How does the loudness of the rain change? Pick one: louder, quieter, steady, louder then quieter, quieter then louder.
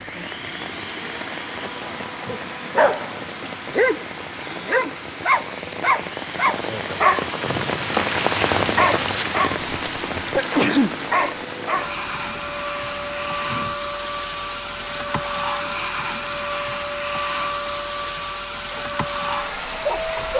louder then quieter.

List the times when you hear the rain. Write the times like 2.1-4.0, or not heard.
0.0-20.3.